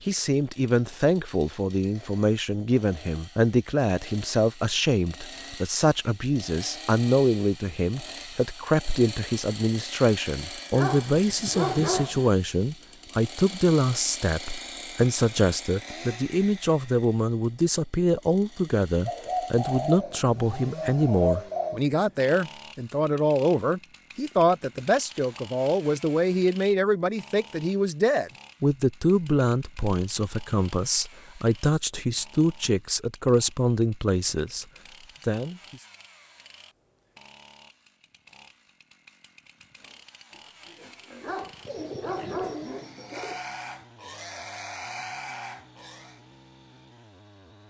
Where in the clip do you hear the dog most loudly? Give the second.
12 s.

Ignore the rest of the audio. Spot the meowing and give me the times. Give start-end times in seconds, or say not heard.
not heard.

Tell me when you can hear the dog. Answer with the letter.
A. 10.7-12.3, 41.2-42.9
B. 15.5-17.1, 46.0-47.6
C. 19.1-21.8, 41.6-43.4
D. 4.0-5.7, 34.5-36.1
A.